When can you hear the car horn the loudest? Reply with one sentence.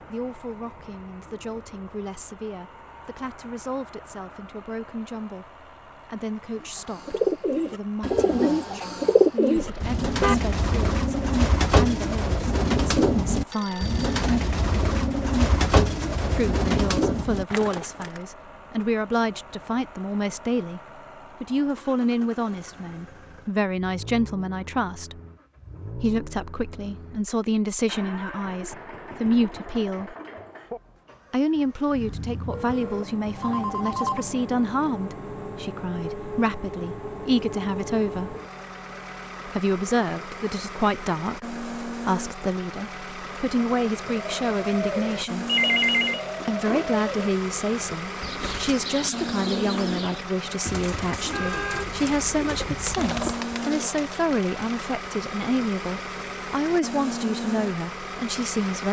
The volume of the car horn peaks at 10 seconds.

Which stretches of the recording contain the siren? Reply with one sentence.
The siren can't be heard in this clip.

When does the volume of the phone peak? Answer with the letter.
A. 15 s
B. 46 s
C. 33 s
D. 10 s
B.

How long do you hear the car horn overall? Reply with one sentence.
You can hear the car horn for 3 seconds altogether.